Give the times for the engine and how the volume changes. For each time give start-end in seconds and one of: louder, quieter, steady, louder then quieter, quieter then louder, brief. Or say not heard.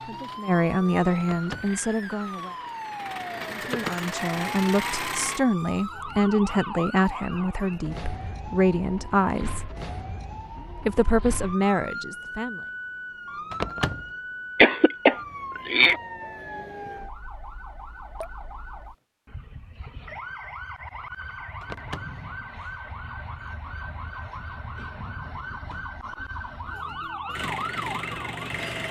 0.0-5.4 louder
27.4-28.8 brief.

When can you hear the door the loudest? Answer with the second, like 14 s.
14 s.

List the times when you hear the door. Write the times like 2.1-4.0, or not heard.
1.2-1.8, 13.5-14.1, 21.6-22.2.